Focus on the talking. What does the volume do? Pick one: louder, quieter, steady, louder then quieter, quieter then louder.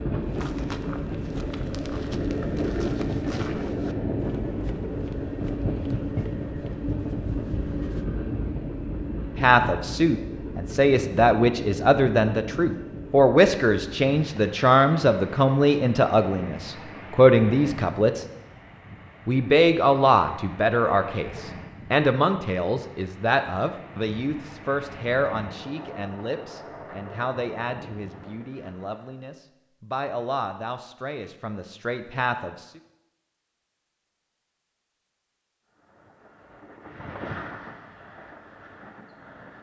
quieter.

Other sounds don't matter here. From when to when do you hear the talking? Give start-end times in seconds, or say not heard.
9.3-18.2, 19.2-32.8.